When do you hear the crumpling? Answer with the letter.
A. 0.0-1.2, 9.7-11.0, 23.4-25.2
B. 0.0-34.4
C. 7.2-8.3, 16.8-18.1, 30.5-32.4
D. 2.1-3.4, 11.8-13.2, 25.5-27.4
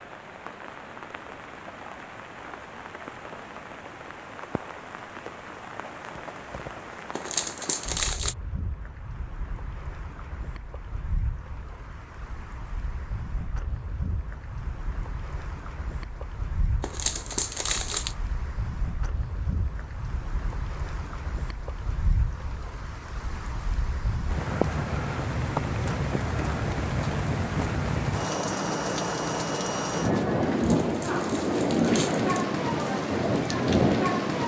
C.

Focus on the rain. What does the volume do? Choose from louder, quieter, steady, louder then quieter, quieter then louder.
louder.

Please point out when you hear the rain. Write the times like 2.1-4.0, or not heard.
0.0-34.4.